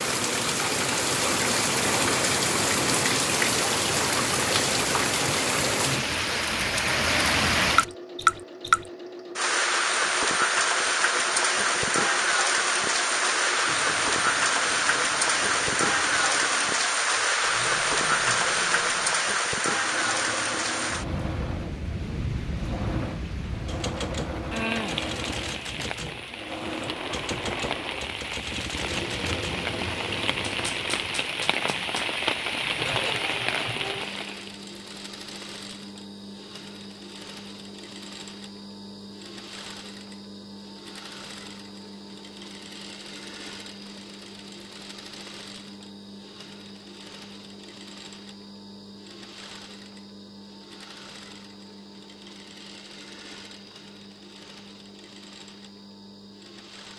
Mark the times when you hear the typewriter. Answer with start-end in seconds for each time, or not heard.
23.6-32.1.